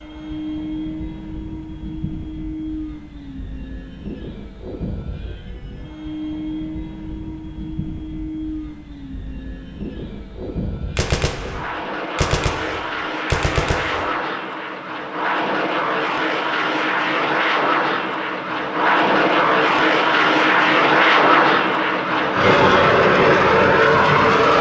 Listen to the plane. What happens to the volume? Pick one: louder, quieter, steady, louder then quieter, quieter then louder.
louder.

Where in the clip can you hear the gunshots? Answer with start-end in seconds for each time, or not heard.
10.9-14.2.